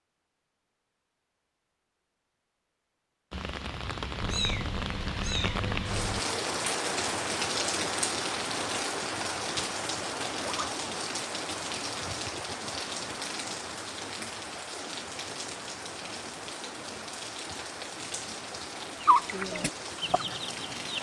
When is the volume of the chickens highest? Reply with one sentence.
The loudest moment of the chickens is at 19 seconds.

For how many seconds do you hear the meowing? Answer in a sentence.
You can hear the meowing for 2 seconds altogether.